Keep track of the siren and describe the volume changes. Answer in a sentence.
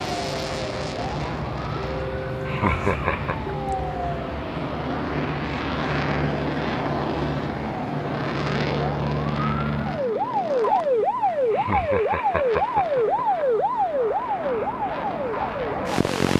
The loudness of the siren goes up.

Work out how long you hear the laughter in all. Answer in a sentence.
You can hear the laughter for 3 seconds altogether.